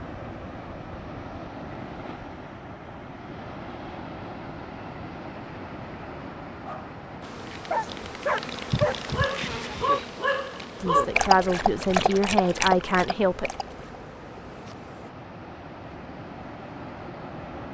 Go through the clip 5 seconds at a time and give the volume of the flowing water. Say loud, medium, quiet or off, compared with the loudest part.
loud, loud, medium, loud.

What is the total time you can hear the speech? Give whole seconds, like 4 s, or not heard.
3 s.